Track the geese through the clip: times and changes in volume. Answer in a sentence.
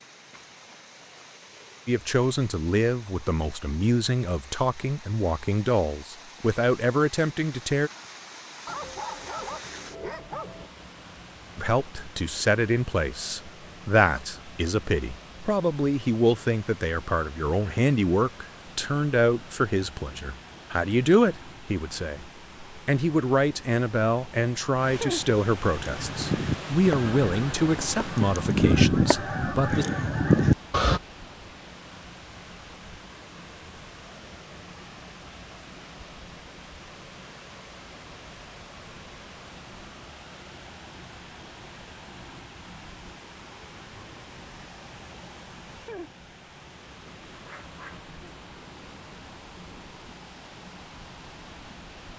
You can hear the geese from 25.8 to 31.0 s, getting quieter then louder.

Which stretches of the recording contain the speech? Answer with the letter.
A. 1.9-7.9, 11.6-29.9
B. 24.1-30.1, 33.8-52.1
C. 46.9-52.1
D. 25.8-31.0
A.